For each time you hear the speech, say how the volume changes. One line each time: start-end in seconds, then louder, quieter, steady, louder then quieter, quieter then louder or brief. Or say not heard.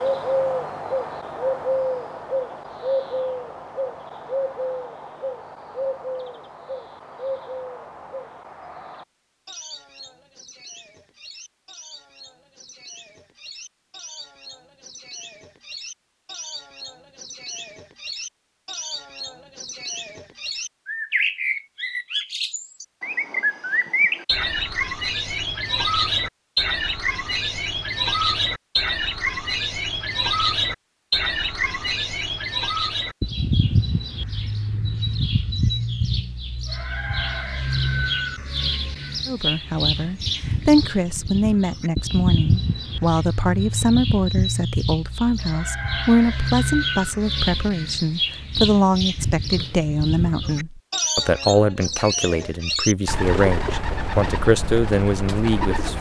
39.2-55.9 steady.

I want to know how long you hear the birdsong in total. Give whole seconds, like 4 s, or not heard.
56 s.